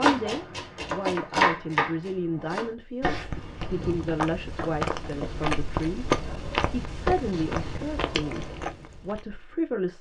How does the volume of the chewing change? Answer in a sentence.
The volume of the chewing goes up, then down.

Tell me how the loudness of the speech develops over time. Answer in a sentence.
The loudness of the speech stays about the same.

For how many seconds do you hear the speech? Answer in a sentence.
The speech can be heard for 9 seconds in total.